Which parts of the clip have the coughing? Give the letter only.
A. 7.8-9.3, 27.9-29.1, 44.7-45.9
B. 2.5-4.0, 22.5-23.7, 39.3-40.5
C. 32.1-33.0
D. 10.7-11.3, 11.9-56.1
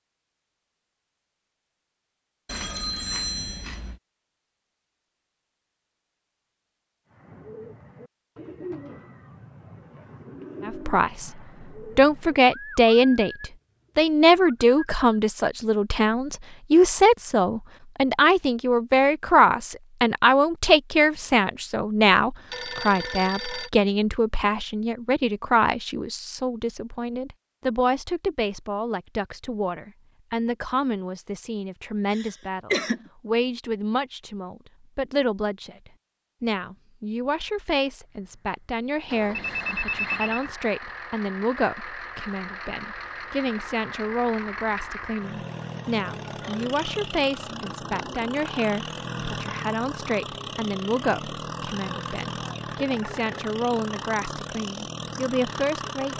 C.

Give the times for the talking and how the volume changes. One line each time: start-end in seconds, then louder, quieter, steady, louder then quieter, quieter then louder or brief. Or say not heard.
10.7-11.3 brief
11.9-56.1 quieter.